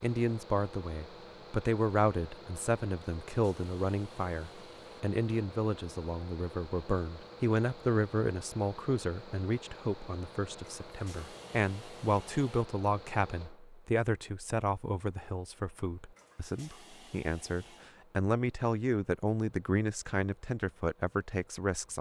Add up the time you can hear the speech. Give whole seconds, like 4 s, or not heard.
22 s.